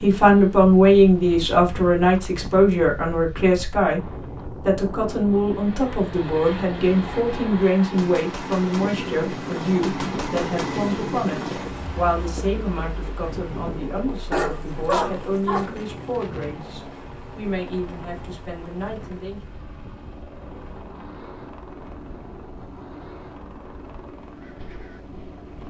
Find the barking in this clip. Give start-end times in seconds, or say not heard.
14.3-15.8.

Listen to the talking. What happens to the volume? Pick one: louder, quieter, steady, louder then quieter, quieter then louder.
quieter.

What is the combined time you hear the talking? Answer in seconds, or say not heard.
19 s.